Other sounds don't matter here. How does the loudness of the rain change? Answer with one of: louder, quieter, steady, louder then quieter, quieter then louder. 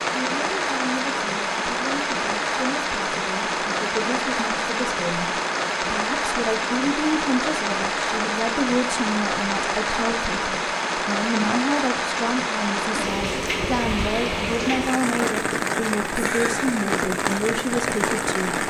steady.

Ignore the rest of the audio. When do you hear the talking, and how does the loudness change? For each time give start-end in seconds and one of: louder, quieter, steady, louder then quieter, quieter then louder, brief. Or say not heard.
0.1-18.6 louder.